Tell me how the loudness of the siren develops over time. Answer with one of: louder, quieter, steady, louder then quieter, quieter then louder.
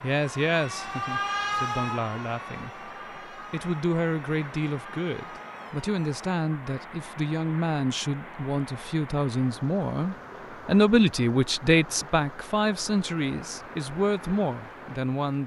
quieter.